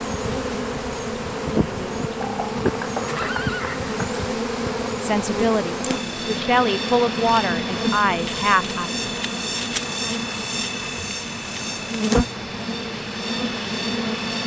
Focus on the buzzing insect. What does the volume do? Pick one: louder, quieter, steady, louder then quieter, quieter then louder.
steady.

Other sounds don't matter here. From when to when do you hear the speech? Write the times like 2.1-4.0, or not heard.
5.0-8.9.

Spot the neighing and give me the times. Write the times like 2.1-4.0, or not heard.
2.2-4.2.